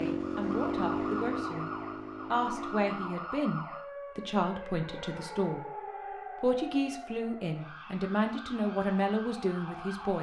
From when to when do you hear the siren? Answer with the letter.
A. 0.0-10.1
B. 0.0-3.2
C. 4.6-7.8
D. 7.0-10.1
A.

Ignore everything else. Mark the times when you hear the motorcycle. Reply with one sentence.
You can hear the motorcycle from 0.0 to 3.2 s.